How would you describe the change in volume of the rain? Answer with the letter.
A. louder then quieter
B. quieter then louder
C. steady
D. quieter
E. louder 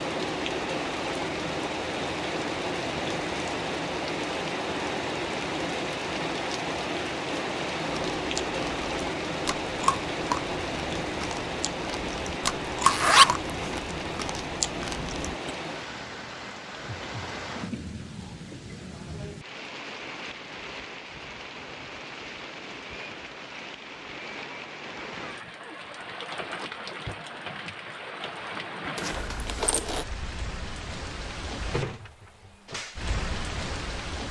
D.